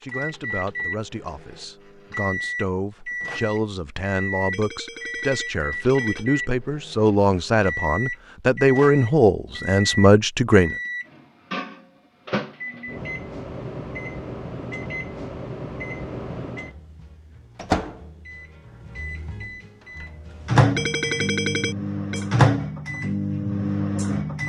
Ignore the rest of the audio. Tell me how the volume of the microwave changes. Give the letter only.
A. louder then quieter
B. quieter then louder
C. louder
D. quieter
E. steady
C.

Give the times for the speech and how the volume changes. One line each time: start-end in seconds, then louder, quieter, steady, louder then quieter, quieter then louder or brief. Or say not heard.
0.0-10.8 louder.